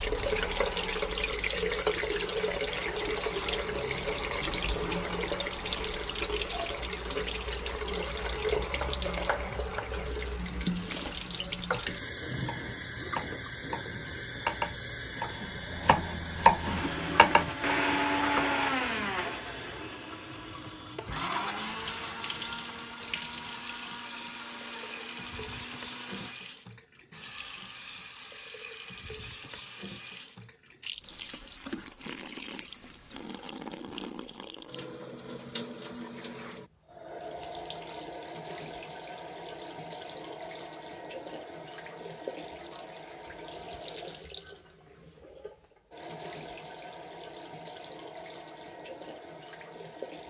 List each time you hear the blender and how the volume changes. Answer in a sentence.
The blender can be heard from 16.6 to 26.4 s, getting quieter.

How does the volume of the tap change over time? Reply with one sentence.
The volume of the tap goes down.